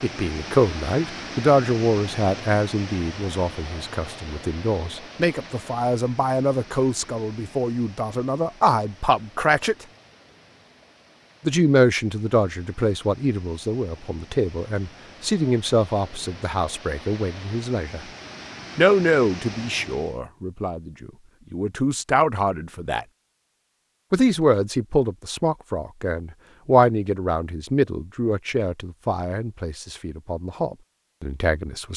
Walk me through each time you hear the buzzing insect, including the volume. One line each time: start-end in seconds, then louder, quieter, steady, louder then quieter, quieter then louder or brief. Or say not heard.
not heard.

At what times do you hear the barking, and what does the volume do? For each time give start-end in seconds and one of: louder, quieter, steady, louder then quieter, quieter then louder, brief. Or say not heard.
not heard.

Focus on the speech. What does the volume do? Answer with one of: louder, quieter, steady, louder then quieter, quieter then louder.
steady.